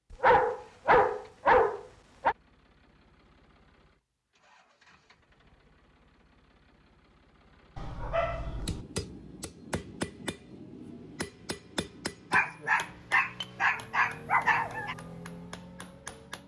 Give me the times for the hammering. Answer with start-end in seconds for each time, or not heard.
8.4-16.4.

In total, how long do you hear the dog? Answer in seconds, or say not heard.
6 s.